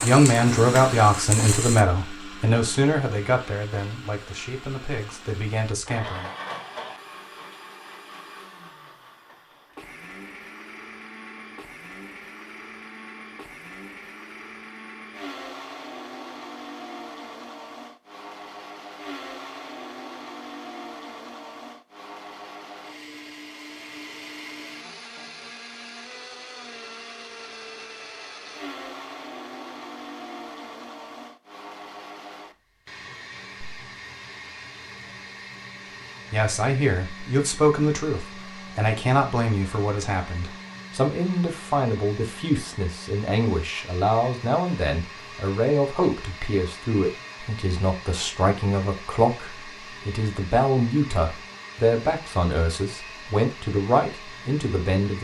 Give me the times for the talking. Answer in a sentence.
The talking can be heard from 0.0 to 6.3 s and from 36.3 to 55.1 s.